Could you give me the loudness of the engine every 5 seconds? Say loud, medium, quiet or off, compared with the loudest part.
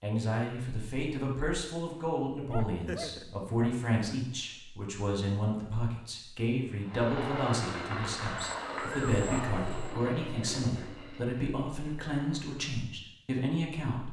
off, loud, medium.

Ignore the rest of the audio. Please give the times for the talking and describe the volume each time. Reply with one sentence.
You can hear the talking from 0.0 to 14.0 s, at a steady volume.